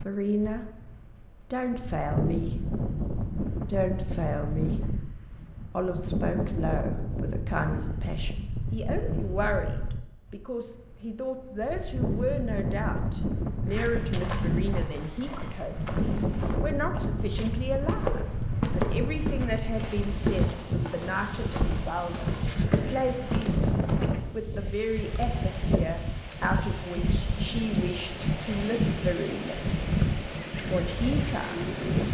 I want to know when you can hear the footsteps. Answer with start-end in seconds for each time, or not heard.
13.7-24.3.